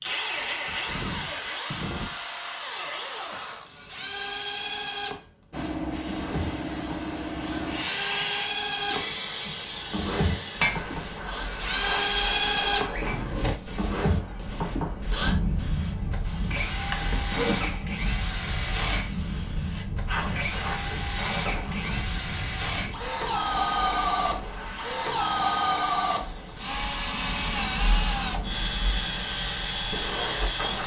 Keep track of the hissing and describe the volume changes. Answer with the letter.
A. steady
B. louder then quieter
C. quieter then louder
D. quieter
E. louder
D.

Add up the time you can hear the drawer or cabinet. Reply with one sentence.
The drawer or cabinet can be heard for 2 seconds in total.